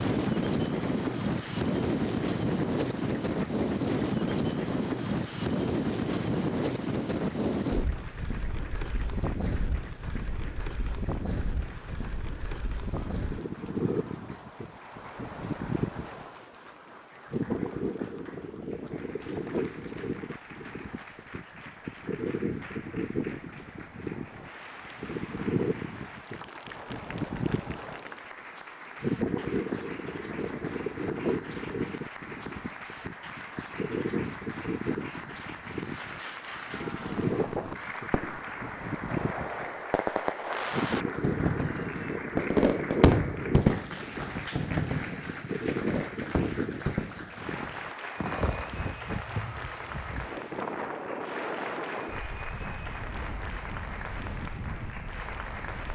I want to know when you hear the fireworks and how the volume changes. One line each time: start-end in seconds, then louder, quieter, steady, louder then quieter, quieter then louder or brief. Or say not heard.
37.0-48.7 louder then quieter.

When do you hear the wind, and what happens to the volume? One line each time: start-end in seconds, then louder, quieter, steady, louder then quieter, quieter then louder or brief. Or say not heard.
0.0-55.9 quieter.